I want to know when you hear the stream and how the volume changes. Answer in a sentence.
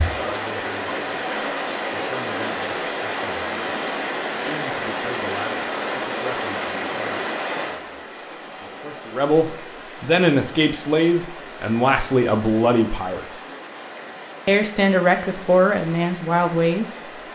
The stream can be heard from 0.0 to 17.3 s, getting quieter.